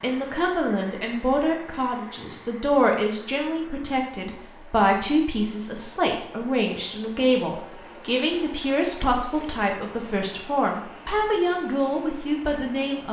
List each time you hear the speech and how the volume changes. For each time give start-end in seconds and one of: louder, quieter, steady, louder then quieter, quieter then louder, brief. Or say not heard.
0.0-13.0 steady.